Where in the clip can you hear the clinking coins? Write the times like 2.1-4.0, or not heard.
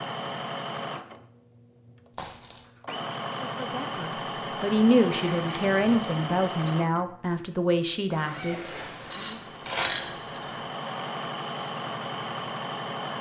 2.1-2.6, 5.3-6.8, 9.1-10.4.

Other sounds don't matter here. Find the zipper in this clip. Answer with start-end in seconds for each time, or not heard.
8.1-10.6.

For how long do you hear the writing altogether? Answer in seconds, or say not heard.
not heard.